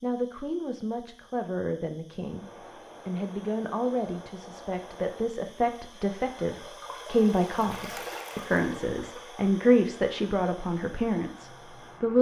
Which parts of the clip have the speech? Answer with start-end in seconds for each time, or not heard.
0.0-2.5, 3.0-12.1.